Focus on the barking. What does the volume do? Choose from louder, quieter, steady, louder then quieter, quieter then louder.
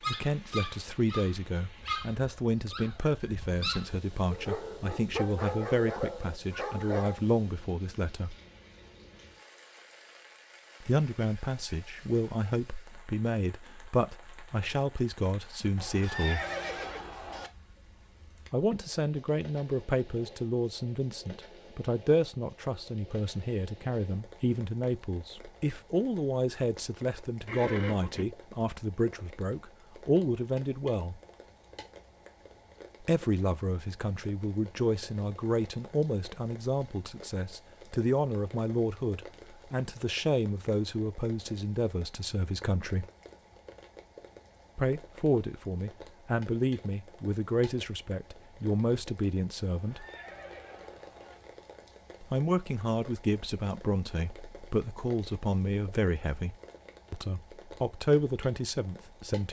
steady.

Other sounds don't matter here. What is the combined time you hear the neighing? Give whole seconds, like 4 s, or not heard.
4 s.